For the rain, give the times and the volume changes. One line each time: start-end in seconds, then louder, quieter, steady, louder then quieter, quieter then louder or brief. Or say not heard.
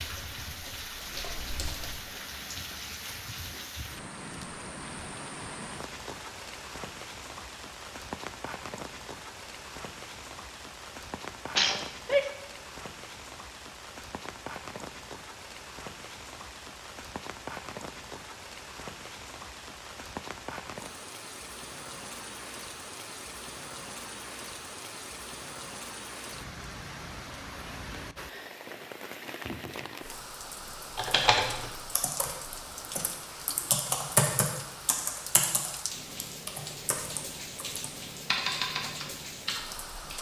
0.0-40.1 steady.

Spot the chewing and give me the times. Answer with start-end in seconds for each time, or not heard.
not heard.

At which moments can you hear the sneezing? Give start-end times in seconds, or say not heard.
11.6-12.2.